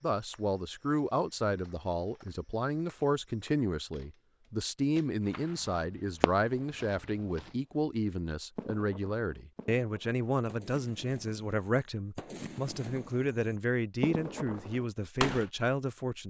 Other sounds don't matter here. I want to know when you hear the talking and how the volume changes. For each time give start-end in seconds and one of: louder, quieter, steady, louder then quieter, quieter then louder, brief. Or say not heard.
0.0-16.2 steady.